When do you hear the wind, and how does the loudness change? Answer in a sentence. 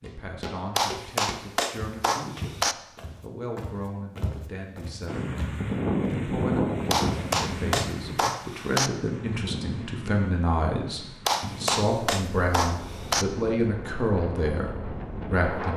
The wind can be heard from 5.0 to 15.7 s, getting quieter.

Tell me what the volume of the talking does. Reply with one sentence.
The volume of the talking goes up.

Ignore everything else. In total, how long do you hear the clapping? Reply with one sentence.
The clapping can be heard for 6 seconds in total.